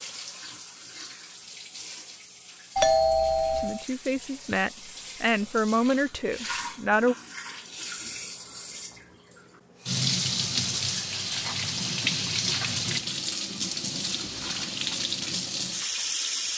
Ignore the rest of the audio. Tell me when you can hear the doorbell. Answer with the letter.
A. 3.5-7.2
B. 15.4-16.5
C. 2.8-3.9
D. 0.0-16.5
C.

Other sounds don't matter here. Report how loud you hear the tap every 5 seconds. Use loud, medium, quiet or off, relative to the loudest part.
quiet, medium, loud, loud.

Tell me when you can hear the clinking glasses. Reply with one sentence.
The clinking glasses can't be heard in this clip.